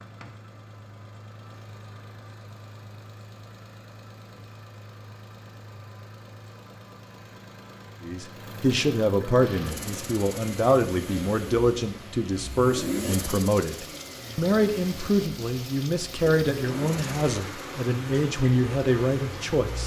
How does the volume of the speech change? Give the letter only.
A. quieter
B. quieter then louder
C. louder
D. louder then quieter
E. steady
E.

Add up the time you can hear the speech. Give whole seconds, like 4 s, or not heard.
12 s.